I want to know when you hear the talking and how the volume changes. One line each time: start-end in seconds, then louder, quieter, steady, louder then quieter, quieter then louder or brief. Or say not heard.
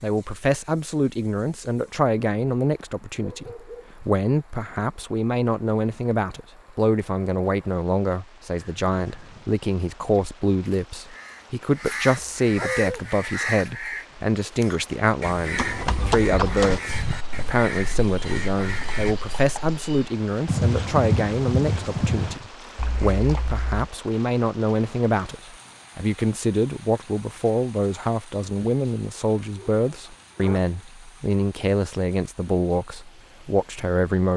0.0-34.3 steady.